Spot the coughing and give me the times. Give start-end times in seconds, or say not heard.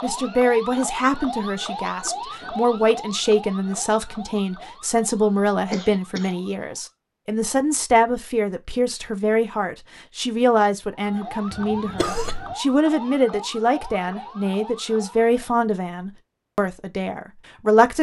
5.7-6.3, 11.5-12.6.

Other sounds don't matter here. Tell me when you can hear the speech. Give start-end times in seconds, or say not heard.
0.0-17.9.